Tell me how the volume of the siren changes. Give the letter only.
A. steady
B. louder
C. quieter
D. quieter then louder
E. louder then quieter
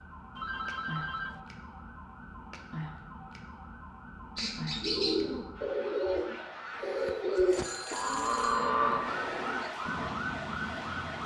B.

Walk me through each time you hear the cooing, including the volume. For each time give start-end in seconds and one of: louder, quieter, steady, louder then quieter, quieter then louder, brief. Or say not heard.
4.3-10.1 steady.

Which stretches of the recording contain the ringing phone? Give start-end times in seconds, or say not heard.
0.3-1.4, 7.5-8.8.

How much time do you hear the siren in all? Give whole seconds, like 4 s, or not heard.
11 s.